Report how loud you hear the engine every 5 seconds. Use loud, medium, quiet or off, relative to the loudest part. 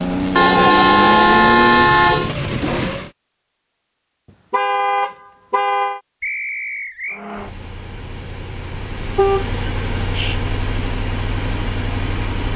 loud, medium, medium.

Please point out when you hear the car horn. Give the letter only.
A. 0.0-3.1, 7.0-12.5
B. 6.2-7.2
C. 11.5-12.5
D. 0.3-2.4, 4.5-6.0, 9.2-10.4
D.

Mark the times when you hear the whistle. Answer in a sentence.
The whistle can be heard from 6.2 to 7.2 s.